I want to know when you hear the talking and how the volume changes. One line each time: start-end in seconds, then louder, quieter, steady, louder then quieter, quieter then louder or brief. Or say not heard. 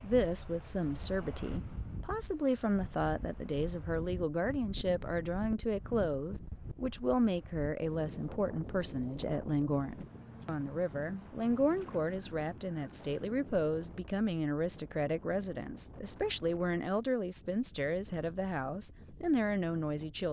0.0-20.2 steady.